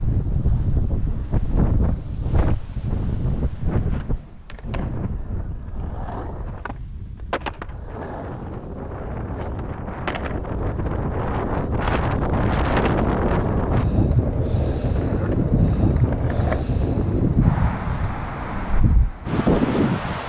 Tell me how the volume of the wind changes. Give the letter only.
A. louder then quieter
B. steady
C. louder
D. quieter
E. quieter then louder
E.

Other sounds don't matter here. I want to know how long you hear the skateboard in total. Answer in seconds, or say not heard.
13 s.